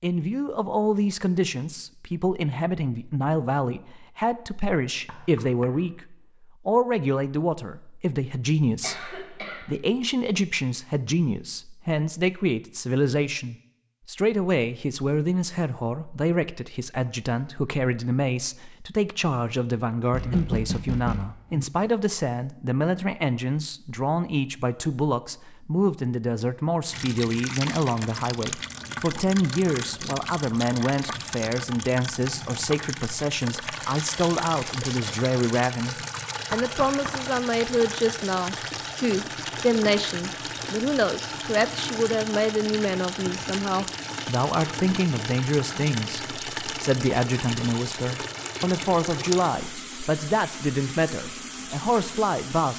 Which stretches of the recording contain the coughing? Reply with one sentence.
You can hear the coughing from 8.8 to 9.7 s.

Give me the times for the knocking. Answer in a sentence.
The knocking can be heard from 5.0 to 5.8 s, from 20.1 to 21.6 s and from 36.5 to 37.2 s.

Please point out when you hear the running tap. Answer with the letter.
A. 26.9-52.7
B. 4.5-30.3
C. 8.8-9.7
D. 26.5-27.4
A.